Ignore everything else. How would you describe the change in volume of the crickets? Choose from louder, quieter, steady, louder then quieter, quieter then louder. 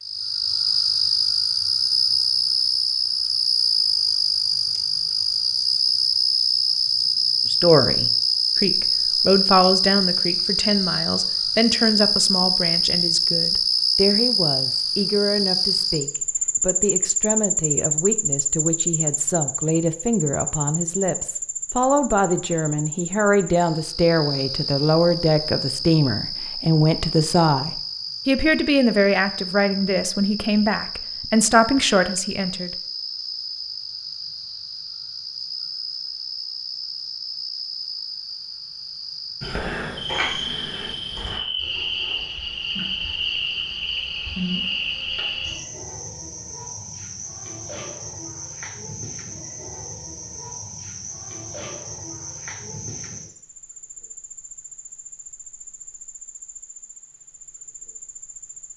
quieter.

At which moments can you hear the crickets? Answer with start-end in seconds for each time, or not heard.
0.0-58.7.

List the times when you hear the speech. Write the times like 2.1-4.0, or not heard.
7.5-32.7.